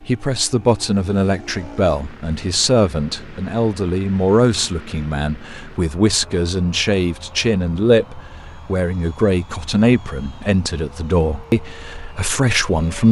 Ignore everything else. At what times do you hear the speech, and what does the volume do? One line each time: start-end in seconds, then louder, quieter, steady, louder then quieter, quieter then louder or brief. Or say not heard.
0.0-13.0 steady.